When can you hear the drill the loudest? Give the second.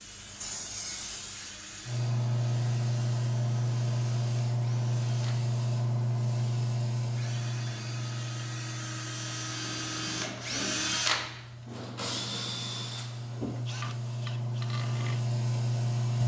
11 s.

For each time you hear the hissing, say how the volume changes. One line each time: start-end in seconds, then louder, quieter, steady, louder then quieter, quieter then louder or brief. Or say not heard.
0.0-16.2 quieter then louder.